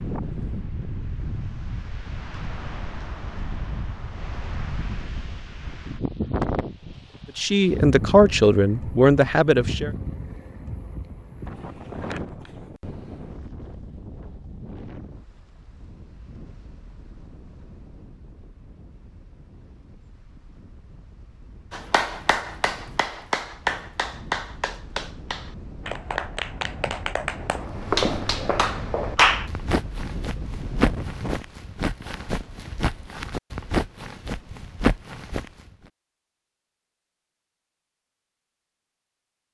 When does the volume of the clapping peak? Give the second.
29 s.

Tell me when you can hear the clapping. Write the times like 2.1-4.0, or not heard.
21.7-29.5.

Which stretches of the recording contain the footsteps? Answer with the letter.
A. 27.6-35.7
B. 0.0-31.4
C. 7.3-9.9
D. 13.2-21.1
A.